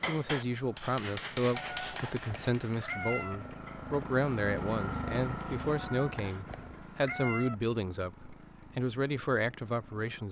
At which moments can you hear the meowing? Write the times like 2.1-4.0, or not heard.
1.7-3.4, 5.7-7.5.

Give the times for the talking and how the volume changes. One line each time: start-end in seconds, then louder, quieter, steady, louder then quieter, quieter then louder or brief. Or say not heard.
0.0-10.2 steady.